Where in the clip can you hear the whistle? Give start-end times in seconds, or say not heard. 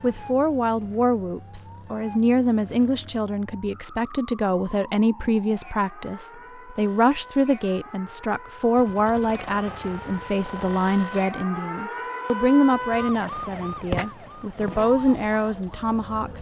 not heard.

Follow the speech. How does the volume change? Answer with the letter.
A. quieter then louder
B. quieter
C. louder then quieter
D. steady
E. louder
D.